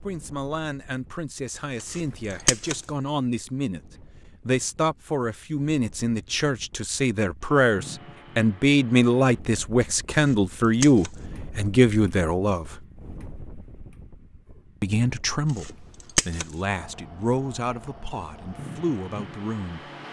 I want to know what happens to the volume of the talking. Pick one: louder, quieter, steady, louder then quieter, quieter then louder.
louder then quieter.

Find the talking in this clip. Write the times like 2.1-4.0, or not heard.
0.0-3.8, 4.5-12.8, 14.8-19.9.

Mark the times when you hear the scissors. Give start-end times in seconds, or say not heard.
1.8-2.8, 10.2-11.1, 15.6-16.4.